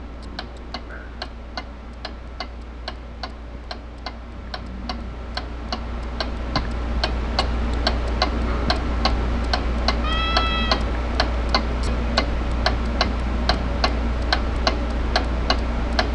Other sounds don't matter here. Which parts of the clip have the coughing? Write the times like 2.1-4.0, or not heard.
not heard.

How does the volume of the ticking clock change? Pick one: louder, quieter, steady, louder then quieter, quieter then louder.
louder.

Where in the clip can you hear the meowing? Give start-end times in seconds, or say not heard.
10.0-10.8.